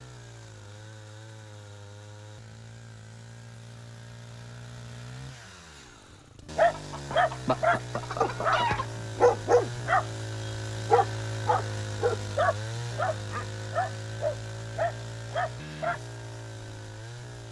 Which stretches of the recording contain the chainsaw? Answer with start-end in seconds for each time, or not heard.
0.0-17.4.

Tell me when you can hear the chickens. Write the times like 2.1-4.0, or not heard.
6.7-8.8.